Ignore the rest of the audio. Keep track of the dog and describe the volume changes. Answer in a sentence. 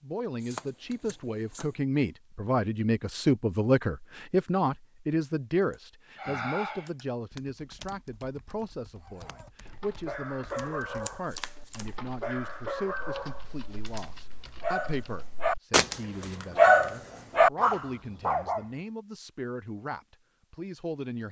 The loudness of the dog goes up.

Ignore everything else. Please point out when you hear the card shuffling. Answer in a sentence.
The card shuffling can be heard from 0.4 to 1.8 s, from 10.5 to 11.8 s and from 15.7 to 16.4 s.